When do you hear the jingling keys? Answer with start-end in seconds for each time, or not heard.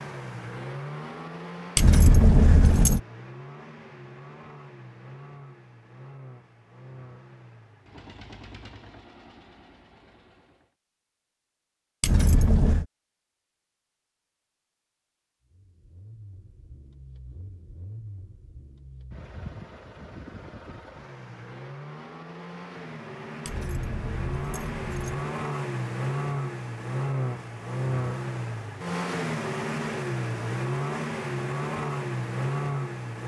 1.8-3.0, 12.0-12.8, 23.4-25.1.